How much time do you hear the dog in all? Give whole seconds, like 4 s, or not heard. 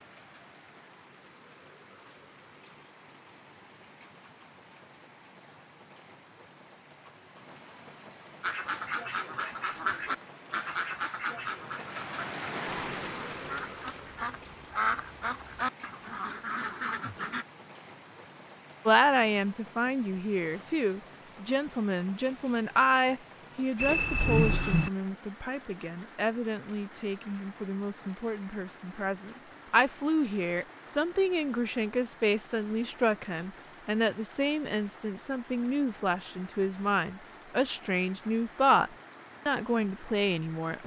not heard.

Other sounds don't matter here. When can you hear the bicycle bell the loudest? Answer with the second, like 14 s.
24 s.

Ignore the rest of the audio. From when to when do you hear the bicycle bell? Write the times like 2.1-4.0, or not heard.
9.6-10.0, 23.8-24.9.